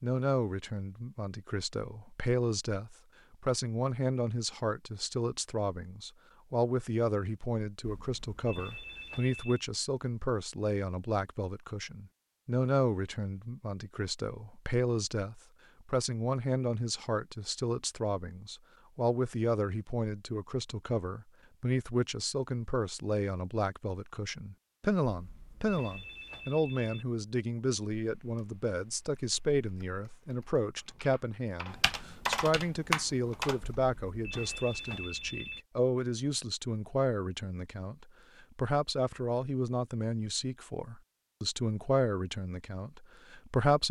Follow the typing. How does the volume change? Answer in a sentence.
The volume of the typing goes up.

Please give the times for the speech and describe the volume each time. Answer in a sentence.
You can hear the speech from 0.0 to 43.8 s, at a steady volume.